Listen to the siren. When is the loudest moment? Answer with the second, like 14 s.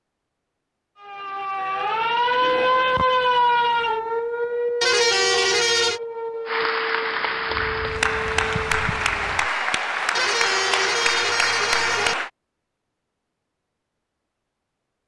3 s.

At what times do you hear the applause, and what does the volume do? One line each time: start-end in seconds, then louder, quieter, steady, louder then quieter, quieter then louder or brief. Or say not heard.
6.5-12.3 steady.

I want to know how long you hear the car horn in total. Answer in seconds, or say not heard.
3 s.